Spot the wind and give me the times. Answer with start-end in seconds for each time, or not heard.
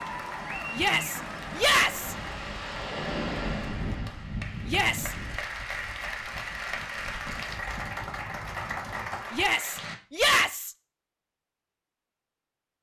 0.0-9.3.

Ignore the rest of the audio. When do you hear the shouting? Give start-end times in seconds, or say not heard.
0.7-2.1, 4.7-5.2, 9.3-10.8.